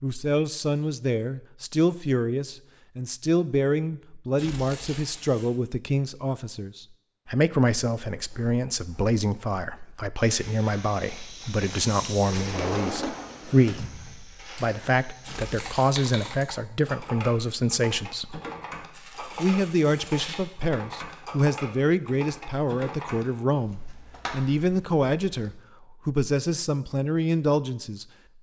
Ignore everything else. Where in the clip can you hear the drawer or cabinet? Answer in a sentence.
The drawer or cabinet can be heard from 12.3 to 13.8 s.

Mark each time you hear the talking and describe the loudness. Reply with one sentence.
The talking can be heard from 0.0 to 18.4 s, at a steady volume; and from 19.2 to 28.1 s, at a steady volume.